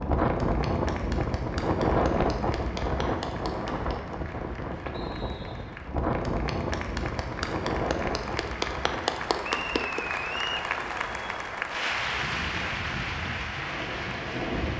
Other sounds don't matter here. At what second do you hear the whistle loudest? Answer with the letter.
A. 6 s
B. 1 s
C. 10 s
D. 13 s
C.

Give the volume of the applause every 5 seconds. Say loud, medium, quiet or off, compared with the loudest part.
medium, loud, loud.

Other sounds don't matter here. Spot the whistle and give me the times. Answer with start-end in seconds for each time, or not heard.
4.9-5.8, 9.4-10.7.